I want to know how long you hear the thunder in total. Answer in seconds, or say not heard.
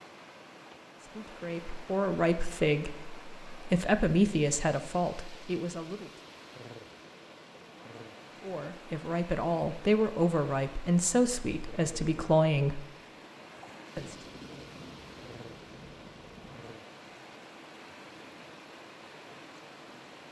3 s.